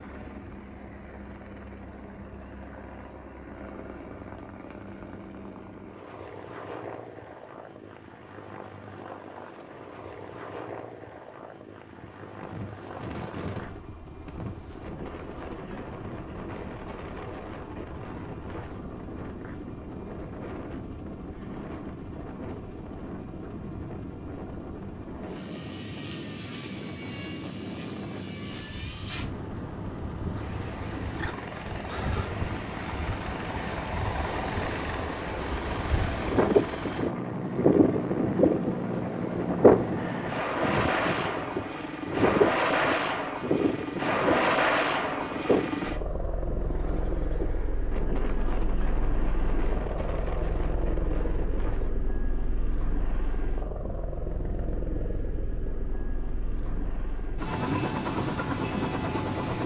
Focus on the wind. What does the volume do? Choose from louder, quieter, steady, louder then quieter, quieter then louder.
louder then quieter.